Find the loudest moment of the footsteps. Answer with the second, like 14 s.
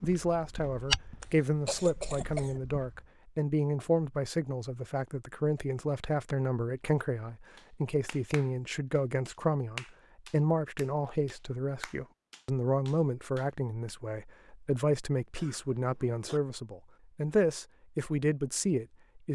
1 s.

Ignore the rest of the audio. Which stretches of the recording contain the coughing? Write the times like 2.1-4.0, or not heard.
1.2-2.6, 15.3-16.4.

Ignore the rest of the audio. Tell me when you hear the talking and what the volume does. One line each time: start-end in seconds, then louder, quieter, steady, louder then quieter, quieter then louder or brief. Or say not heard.
0.0-19.3 steady.